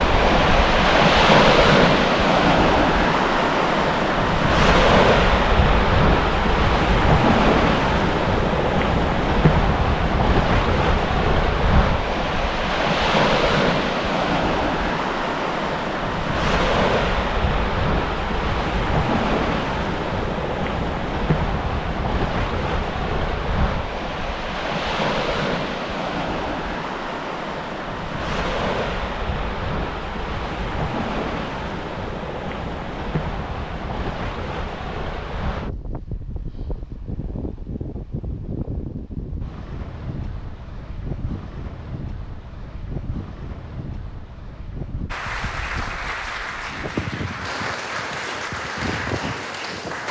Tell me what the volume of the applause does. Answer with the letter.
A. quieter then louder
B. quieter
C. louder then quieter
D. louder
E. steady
E.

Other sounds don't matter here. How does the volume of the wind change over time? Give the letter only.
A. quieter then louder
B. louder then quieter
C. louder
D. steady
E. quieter
E.